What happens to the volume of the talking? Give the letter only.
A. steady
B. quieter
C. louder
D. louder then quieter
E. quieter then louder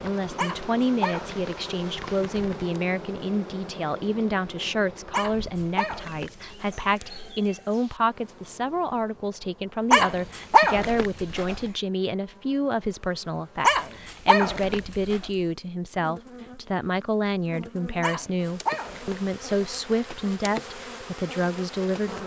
A.